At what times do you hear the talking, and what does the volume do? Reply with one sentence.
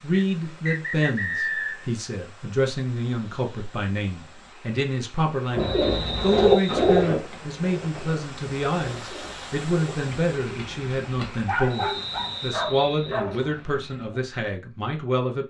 You can hear the talking from 0.0 to 15.4 s, at a steady volume.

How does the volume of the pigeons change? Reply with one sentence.
The loudness of the pigeons goes down.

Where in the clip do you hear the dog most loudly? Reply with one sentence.
The loudest moment of the dog is at 12 seconds.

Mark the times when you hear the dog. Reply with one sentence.
The dog can be heard from 11.3 to 13.5 s.